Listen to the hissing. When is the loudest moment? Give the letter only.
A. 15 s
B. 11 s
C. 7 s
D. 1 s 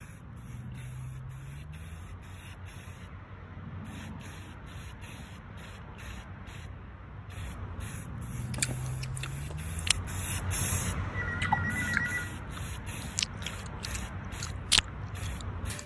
B.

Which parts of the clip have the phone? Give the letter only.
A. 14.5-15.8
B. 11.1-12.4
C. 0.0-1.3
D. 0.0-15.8
B.